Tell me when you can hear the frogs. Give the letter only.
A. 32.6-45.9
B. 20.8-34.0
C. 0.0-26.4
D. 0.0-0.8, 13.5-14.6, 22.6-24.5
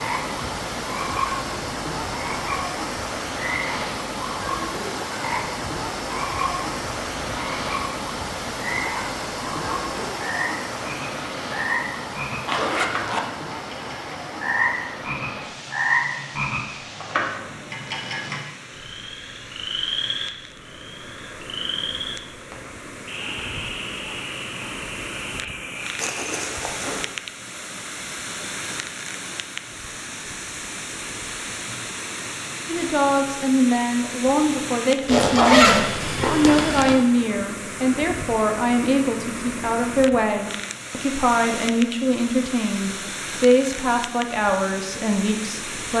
C.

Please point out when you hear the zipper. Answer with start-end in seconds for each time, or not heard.
12.4-13.2, 25.9-27.0, 35.0-37.0.